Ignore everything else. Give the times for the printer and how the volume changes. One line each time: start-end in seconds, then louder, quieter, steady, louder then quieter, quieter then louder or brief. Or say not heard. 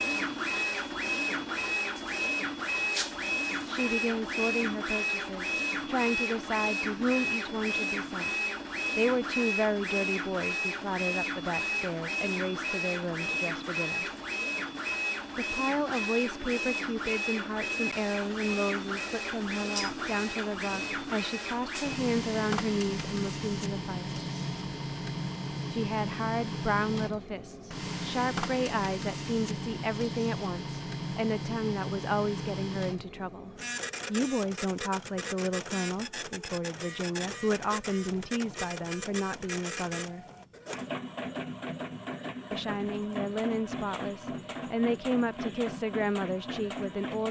0.0-47.2 quieter.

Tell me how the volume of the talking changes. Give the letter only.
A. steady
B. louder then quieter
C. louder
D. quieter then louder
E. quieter
A.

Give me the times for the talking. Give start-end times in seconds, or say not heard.
3.6-14.1, 15.3-24.2, 25.7-40.2, 42.5-47.2.